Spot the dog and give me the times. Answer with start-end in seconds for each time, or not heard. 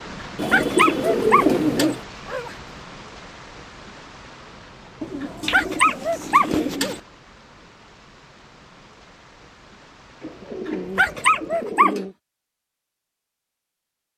0.2-2.5, 5.2-7.0, 10.7-12.0.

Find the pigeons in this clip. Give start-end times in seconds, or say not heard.
0.3-2.0, 5.0-7.0, 10.2-12.2.